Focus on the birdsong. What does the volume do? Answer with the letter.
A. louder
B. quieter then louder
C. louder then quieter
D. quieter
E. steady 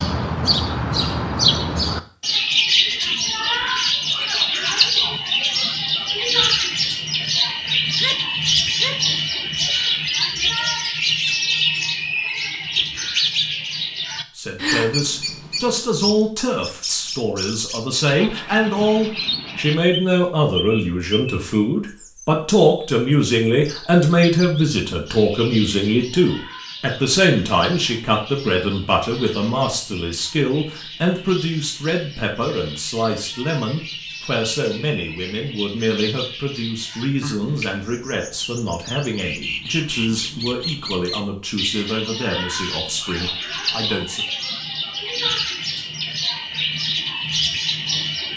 B.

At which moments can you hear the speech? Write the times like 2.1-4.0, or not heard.
14.3-44.2.